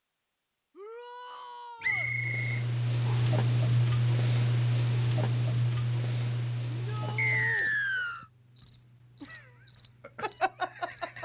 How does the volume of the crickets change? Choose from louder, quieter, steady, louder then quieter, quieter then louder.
quieter.